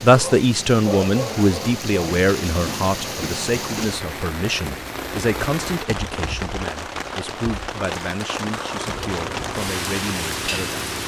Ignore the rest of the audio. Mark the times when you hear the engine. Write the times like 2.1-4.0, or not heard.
8.8-11.0.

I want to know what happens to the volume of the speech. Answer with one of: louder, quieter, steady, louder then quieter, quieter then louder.
quieter.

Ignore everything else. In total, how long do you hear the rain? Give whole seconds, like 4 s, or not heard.
11 s.